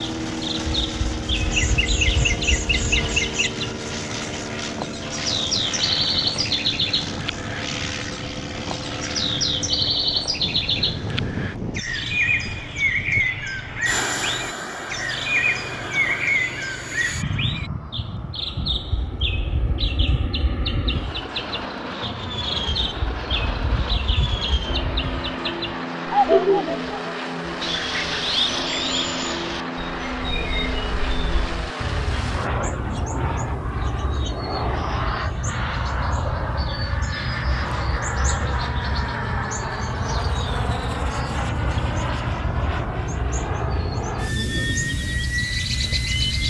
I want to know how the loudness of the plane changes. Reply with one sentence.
The volume of the plane stays about the same.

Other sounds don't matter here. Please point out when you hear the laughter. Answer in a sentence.
The laughter can be heard from 1.5 to 3.5 s and from 26.2 to 26.8 s.